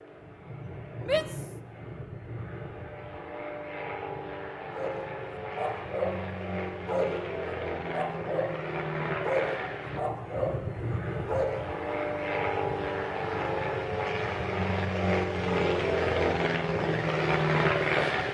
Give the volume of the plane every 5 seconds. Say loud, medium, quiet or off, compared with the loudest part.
quiet, medium, medium, loud.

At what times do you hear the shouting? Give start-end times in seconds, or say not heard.
1.0-1.5.